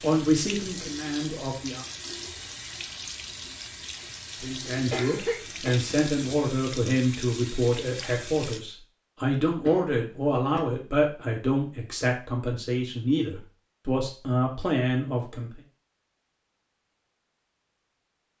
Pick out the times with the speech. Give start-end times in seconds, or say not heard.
0.0-1.9, 4.4-15.6.